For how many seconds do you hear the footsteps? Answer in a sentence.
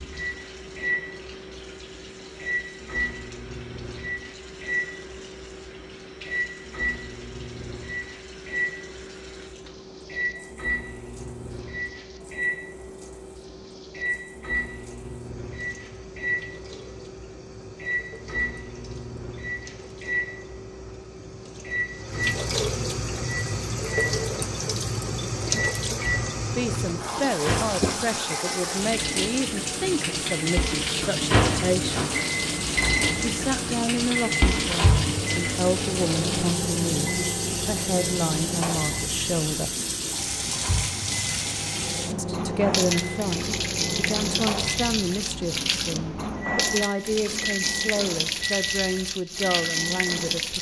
The footsteps can't be heard in this clip.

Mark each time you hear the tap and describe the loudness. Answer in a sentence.
You can hear the tap from 0.0 to 50.5 s, getting louder.